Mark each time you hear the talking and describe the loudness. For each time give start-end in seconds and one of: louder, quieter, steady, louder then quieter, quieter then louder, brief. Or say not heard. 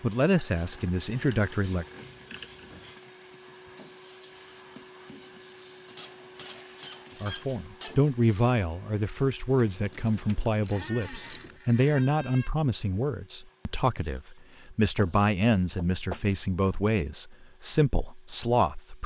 0.0-1.9 brief
7.2-19.0 steady.